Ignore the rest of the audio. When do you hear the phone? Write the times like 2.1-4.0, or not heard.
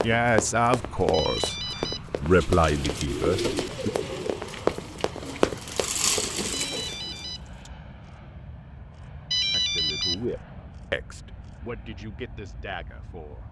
1.1-2.0, 6.5-7.4, 9.3-10.2.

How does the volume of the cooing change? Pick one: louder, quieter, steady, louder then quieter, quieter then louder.
quieter then louder.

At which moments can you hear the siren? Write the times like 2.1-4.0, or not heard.
not heard.